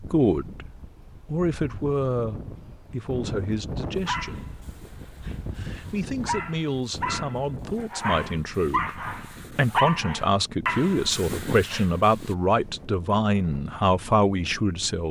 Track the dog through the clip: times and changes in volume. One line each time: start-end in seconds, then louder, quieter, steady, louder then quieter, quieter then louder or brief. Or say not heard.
4.0-12.3 louder.